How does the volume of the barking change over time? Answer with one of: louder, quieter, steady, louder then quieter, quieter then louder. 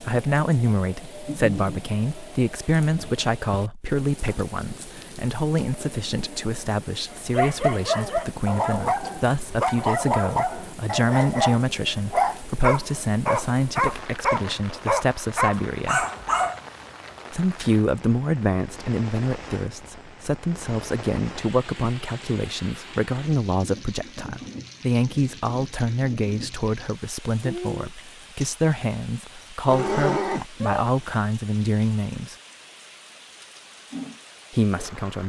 steady.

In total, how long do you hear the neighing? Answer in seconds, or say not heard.
2 s.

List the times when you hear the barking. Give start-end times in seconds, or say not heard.
7.1-16.6.